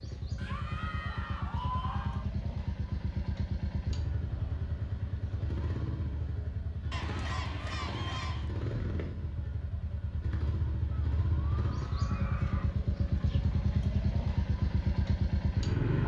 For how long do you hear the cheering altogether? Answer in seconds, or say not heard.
5 s.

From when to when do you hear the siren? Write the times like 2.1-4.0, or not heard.
not heard.